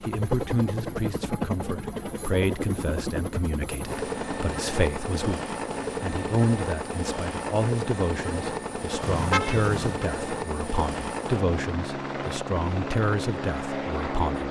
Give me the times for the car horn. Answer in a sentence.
The car horn can be heard from 9.0 to 10.1 s.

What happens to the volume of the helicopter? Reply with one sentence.
The volume of the helicopter stays about the same.